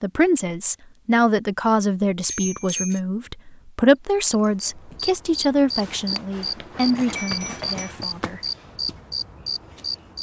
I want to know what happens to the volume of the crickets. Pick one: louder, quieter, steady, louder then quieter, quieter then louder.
steady.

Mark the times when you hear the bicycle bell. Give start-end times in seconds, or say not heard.
2.2-3.0, 7.2-7.9.